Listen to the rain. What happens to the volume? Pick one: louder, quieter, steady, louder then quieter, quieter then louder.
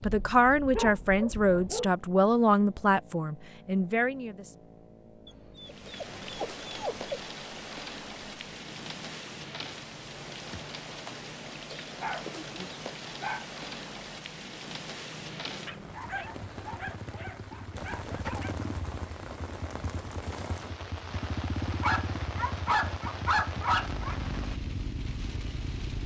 steady.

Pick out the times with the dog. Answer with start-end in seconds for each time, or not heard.
0.0-1.9, 5.2-7.2, 11.8-13.4, 15.7-18.6, 21.8-24.1.